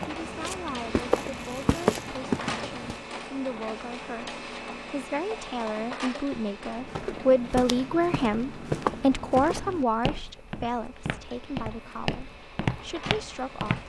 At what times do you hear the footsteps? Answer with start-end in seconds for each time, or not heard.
0.0-3.0, 6.8-13.8.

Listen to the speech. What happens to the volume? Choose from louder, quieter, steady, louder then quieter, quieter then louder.
louder then quieter.